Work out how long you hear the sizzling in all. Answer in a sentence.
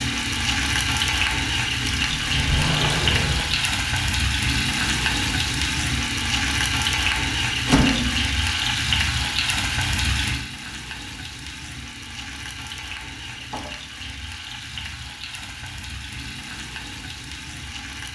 The sizzling can be heard for 18 seconds in total.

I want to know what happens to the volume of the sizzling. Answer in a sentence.
The volume of the sizzling goes down.